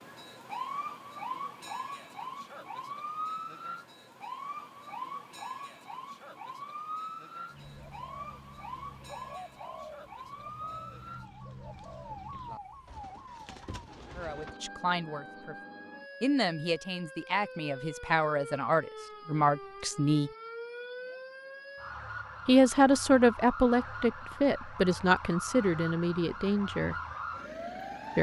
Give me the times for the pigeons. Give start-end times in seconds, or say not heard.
7.5-14.6.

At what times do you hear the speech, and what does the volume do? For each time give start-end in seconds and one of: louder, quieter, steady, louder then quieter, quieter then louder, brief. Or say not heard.
14.2-15.6 brief
16.2-20.3 louder
22.4-26.9 quieter.